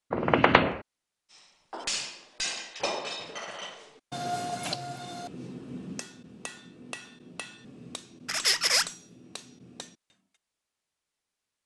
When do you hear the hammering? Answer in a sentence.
You can hear the hammering from 1.4 to 10.2 s.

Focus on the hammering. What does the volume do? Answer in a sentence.
The volume of the hammering goes down.